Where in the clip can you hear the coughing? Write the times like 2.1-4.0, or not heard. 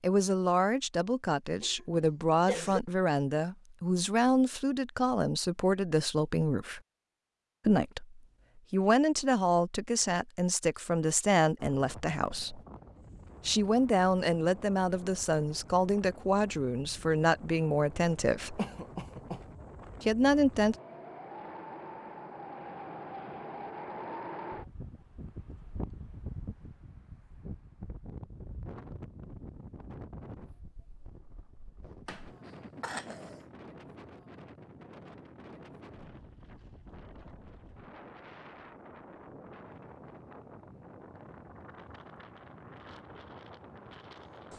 1.6-2.8, 18.6-19.4, 32.0-33.4.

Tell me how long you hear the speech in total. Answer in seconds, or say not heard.
18 s.